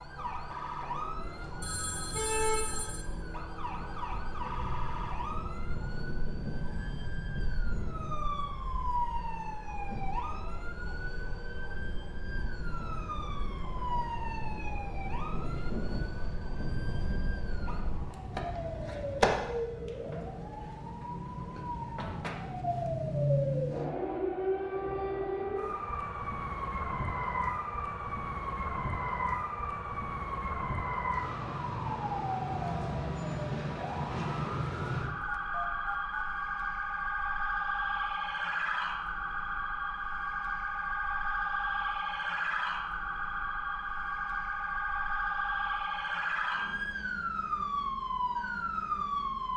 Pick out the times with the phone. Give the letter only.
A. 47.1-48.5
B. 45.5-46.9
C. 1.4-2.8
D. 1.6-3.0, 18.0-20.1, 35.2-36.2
D.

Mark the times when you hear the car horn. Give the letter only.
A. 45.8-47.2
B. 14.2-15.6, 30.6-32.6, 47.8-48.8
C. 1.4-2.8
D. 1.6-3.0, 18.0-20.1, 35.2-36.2
C.